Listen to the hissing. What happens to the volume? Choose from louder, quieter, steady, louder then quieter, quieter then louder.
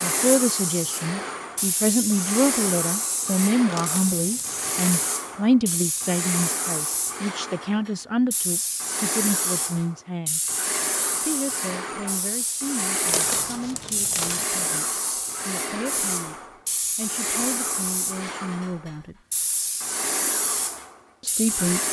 steady.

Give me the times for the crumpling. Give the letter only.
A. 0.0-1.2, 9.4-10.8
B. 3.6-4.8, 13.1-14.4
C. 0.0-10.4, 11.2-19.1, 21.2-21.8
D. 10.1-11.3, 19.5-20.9
B.